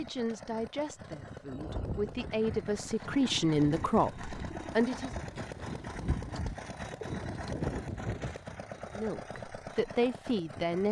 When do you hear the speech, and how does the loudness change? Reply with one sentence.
The speech can be heard from 0.0 to 5.2 s, getting louder; and briefly from 8.9 to 10.8 s.